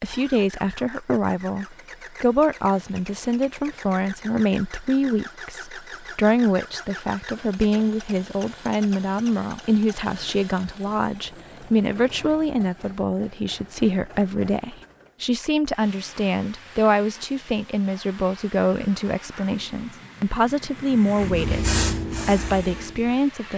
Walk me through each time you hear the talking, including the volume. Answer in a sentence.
You can hear the talking from 0.0 to 23.5 s, at a steady volume.